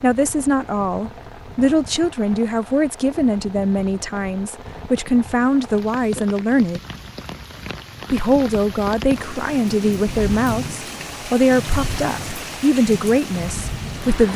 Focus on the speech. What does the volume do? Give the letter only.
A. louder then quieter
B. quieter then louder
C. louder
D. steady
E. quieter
D.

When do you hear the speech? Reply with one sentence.
The speech can be heard from 0.0 to 6.8 s and from 8.1 to 14.3 s.